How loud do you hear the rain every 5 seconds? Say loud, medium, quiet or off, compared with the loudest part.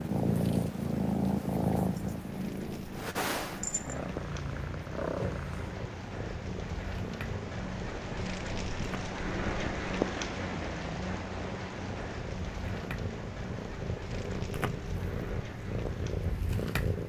medium, loud, loud, medium.